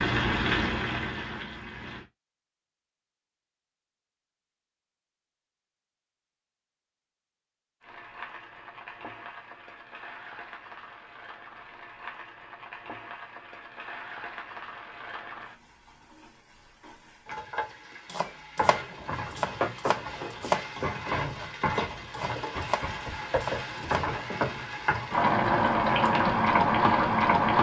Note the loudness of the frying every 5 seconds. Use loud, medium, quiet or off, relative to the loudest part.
medium, quiet, quiet, quiet, medium, loud.